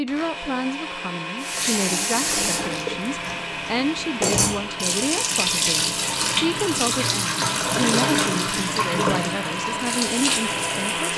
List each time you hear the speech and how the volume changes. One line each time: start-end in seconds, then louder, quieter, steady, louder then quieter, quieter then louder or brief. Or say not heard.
0.0-11.1 steady.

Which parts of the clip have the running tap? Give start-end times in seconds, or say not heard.
1.4-11.1.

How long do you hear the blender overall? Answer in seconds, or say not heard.
11 s.